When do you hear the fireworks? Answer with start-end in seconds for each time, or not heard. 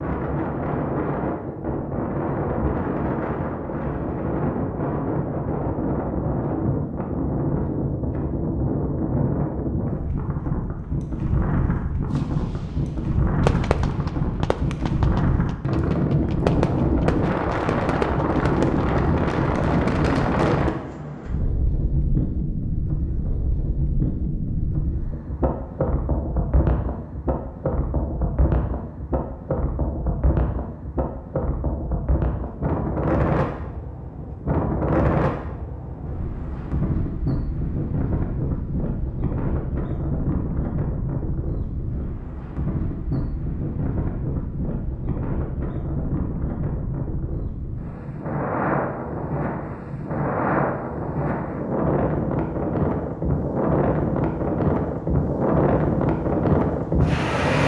12.1-18.9.